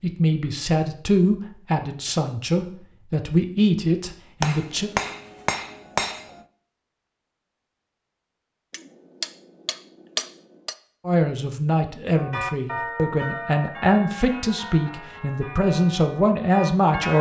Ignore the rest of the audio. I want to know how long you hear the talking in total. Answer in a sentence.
The talking can be heard for 11 seconds in total.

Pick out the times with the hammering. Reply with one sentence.
The hammering can be heard from 4.4 to 6.5 s and from 8.7 to 10.8 s.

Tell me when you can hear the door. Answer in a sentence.
You can't hear the door here.